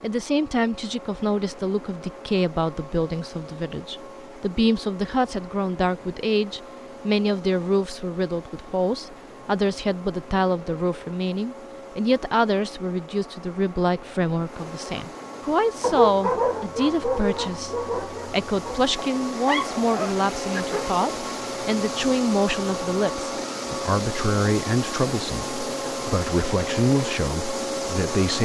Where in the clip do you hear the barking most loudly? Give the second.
16 s.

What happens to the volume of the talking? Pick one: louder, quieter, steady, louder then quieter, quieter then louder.
steady.